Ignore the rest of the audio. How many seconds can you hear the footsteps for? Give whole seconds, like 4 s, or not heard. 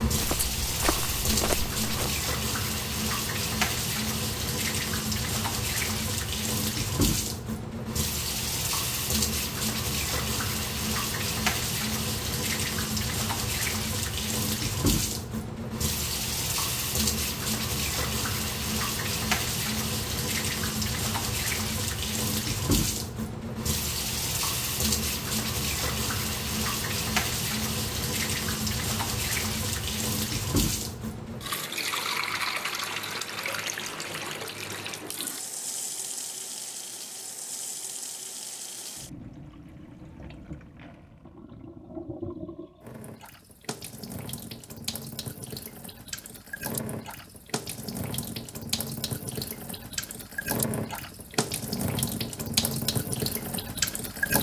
2 s.